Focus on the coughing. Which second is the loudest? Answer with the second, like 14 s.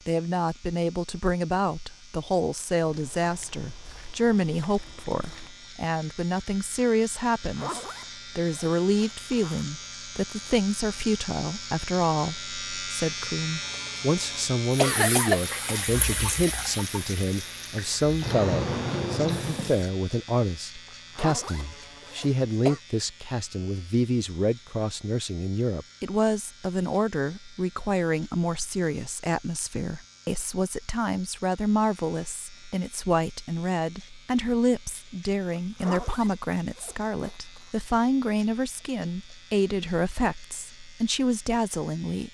15 s.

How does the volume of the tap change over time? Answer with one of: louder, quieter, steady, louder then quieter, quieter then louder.
quieter then louder.